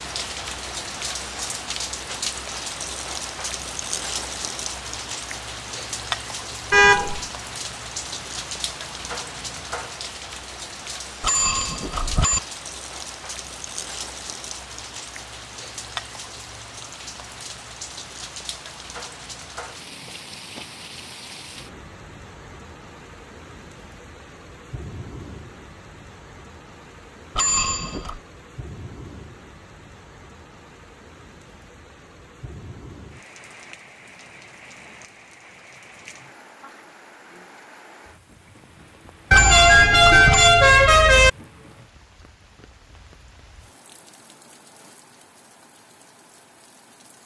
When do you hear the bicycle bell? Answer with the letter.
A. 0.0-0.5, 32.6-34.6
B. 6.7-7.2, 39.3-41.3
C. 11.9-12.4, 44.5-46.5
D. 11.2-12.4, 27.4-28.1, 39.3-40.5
D.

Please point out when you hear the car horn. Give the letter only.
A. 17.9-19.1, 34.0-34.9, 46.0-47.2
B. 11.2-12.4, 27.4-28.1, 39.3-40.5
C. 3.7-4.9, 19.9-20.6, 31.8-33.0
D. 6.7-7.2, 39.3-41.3
D.